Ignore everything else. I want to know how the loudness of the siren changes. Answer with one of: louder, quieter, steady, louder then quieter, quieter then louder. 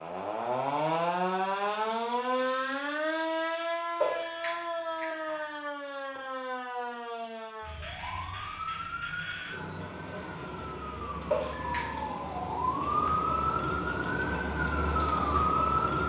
quieter then louder.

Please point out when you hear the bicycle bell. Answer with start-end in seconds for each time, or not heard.
4.0-5.7, 11.3-12.2.